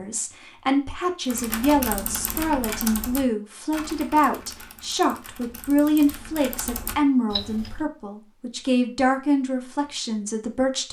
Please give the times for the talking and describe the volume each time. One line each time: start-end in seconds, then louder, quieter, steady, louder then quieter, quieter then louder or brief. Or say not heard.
0.0-10.8 steady.